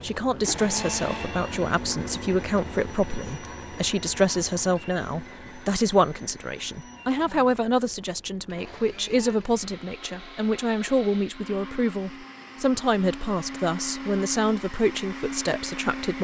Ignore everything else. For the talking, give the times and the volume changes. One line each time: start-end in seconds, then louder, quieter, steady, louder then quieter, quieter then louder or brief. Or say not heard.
0.0-16.1 steady.